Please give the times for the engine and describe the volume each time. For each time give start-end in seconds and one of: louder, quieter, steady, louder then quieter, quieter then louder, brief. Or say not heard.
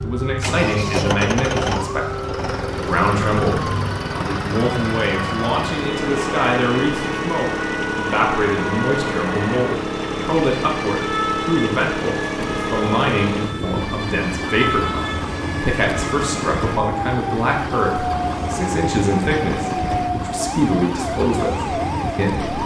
0.4-22.6 steady.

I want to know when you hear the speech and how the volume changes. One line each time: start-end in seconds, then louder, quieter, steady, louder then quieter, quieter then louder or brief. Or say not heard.
0.0-22.6 steady.